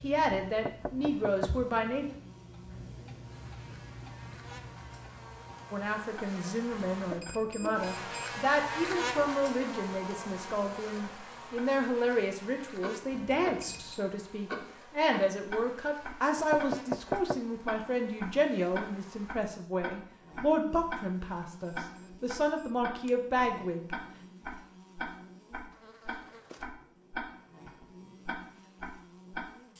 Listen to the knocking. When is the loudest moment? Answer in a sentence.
The volume of the knocking peaks at 17 seconds.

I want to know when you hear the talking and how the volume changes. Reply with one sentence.
The talking can be heard briefly from 0.0 to 2.0 s; and from 5.7 to 23.9 s, at a steady volume.